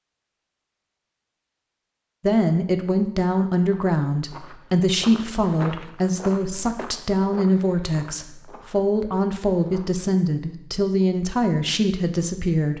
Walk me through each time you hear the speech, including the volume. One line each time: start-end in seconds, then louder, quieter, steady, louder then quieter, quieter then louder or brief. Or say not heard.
2.2-12.7 steady.